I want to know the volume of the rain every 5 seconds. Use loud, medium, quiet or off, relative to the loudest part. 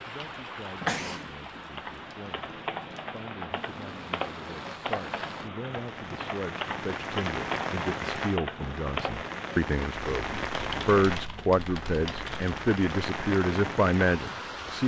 medium, loud, loud.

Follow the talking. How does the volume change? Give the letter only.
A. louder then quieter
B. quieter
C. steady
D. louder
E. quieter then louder
D.